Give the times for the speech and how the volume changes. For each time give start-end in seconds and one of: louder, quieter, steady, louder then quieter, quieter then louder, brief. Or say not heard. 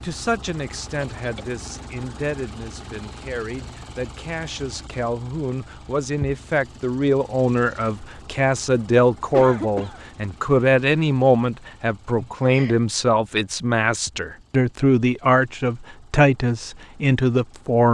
0.0-17.8 louder.